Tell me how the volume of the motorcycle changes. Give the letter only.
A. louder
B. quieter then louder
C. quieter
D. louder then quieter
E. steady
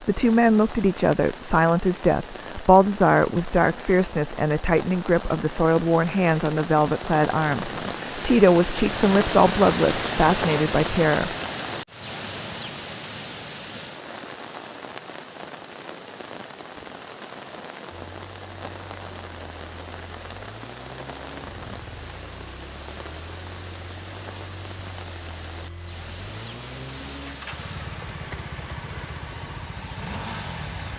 A.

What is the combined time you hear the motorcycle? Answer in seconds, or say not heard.
13 s.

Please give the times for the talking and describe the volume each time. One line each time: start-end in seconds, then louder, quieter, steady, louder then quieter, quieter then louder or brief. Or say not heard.
0.1-11.3 steady.